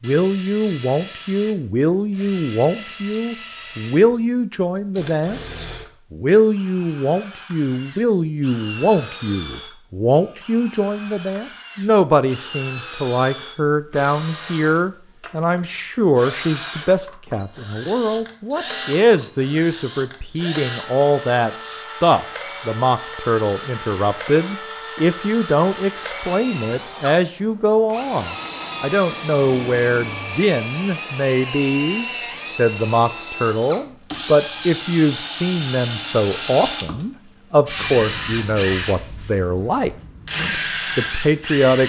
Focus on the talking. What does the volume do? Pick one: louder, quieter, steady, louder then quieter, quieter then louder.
steady.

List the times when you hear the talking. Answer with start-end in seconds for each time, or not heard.
0.0-41.8.